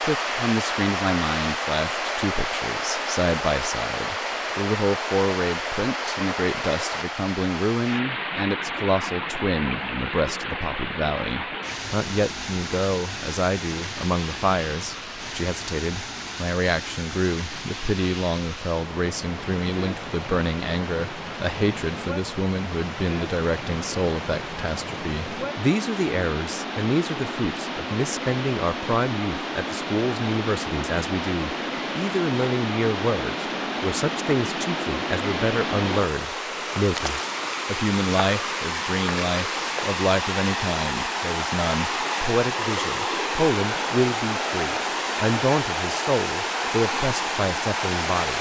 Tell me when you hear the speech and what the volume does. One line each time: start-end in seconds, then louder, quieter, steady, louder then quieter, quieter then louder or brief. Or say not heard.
0.0-48.3 steady.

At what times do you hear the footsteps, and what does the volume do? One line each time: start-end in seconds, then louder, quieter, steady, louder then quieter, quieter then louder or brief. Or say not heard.
not heard.